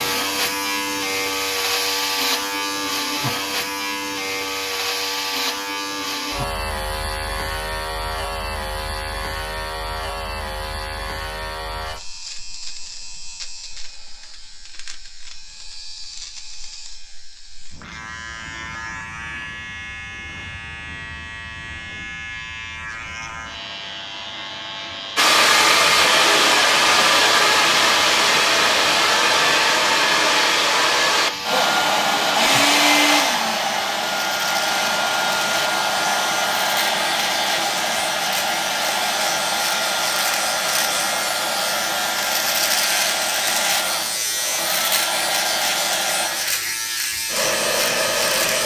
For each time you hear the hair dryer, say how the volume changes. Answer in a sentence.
You can hear the hair dryer from 25.1 to 48.6 s, getting quieter.